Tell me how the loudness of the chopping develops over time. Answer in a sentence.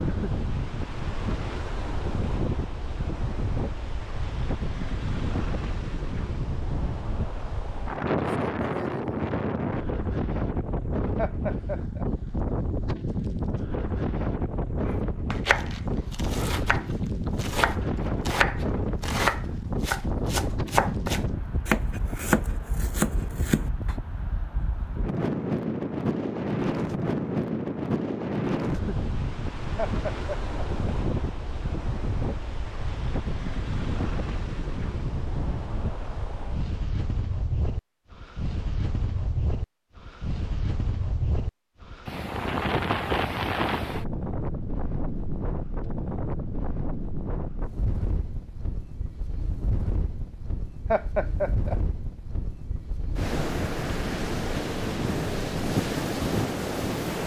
The volume of the chopping goes up.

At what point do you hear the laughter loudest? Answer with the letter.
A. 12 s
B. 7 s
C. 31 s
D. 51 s
D.